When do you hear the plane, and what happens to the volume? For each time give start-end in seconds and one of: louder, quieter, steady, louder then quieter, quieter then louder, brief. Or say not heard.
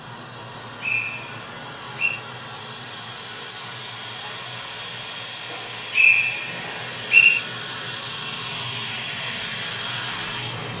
0.0-10.7 louder.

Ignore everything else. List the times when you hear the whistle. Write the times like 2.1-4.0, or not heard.
0.8-2.1, 5.5-7.4.